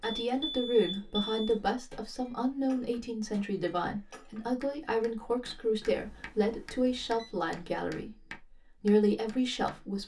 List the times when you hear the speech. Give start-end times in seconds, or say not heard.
0.0-10.0.